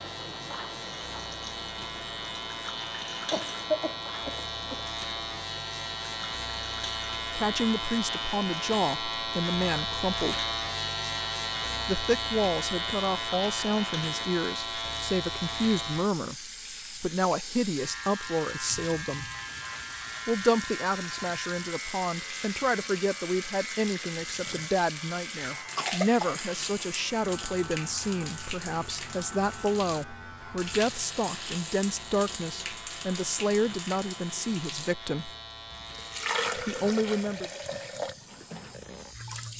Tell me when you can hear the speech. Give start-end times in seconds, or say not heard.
7.3-10.4, 11.8-19.2, 20.2-35.3, 36.5-37.5.